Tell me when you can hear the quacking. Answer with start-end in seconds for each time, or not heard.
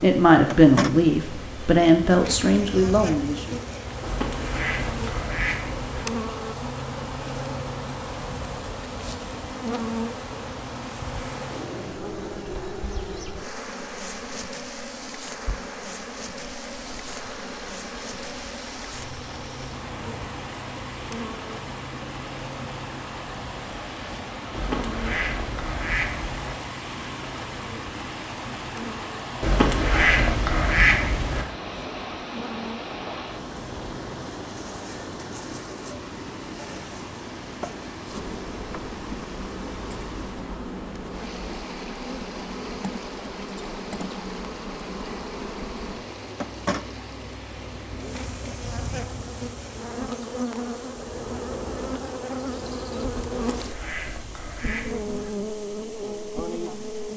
4.0-6.0, 24.5-26.6, 29.4-31.4, 53.3-55.3.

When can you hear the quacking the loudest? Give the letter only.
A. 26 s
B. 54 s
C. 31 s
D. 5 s
C.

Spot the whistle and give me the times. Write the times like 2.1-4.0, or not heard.
not heard.